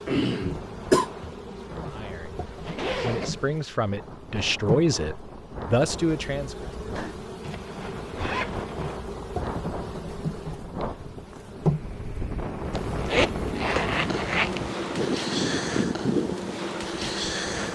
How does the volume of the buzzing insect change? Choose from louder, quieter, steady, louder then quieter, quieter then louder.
louder.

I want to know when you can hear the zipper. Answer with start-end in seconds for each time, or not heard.
2.5-3.5, 7.4-8.9, 12.7-14.7.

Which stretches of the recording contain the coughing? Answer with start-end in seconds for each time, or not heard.
0.1-1.1.